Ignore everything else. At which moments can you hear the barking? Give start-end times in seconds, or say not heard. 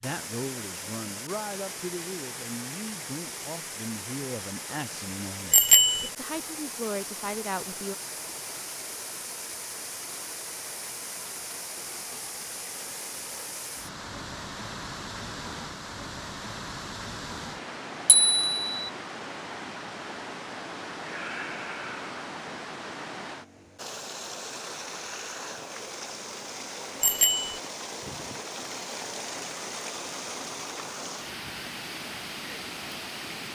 not heard.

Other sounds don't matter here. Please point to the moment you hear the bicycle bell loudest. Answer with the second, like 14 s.
6 s.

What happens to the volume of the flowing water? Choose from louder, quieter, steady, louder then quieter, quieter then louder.
steady.